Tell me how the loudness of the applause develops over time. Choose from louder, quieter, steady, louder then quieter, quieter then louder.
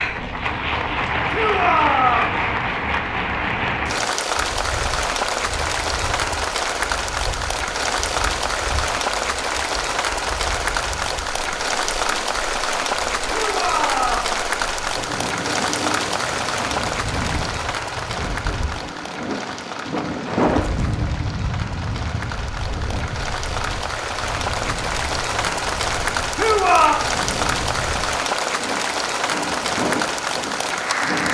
quieter then louder.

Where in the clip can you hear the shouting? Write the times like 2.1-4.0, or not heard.
1.3-2.4, 13.2-14.3, 26.4-27.0.